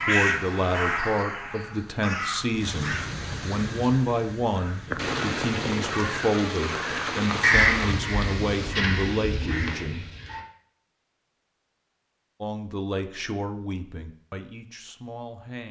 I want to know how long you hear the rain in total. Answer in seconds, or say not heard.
9 s.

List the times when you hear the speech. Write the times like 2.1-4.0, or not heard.
0.1-10.1, 12.4-15.6.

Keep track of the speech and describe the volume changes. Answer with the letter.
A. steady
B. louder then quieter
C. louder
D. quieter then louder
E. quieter
E.